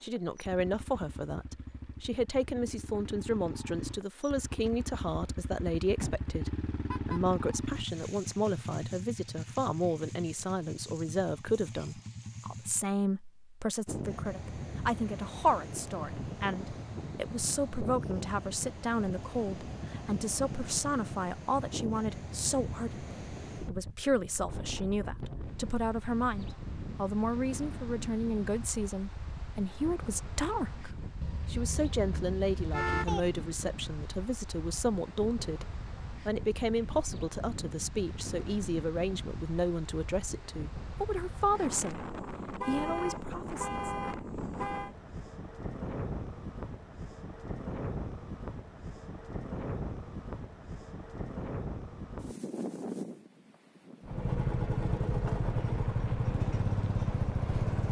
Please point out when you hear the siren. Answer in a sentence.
The siren can't be heard in this clip.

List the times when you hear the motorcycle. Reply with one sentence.
You can hear the motorcycle from 0.0 to 12.9 s and from 54.0 to 57.8 s.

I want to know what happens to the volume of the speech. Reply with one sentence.
The loudness of the speech stays about the same.